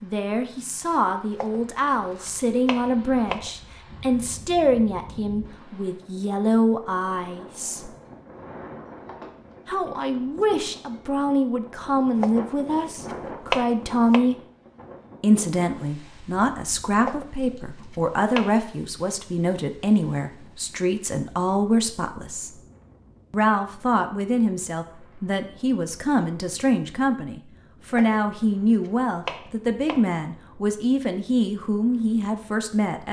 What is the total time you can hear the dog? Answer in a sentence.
You can't hear the dog here.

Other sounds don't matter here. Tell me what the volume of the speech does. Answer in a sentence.
The volume of the speech stays about the same.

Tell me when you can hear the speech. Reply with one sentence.
The speech can be heard from 0.0 to 7.9 s, from 9.7 to 14.3 s, from 15.2 to 22.6 s and from 23.3 to 33.0 s.